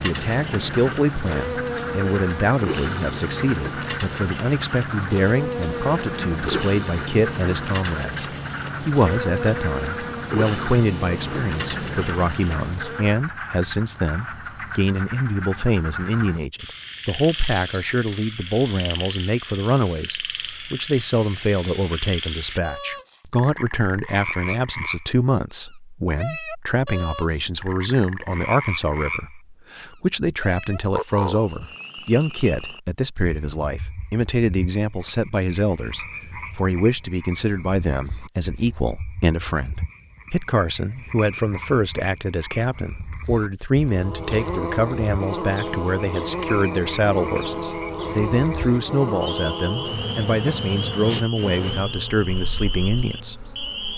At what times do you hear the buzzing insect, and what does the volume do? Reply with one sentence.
The buzzing insect can be heard from 0.0 to 13.2 s, at a steady volume; and from 43.8 to 53.9 s, getting quieter.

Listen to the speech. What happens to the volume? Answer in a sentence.
The volume of the speech stays about the same.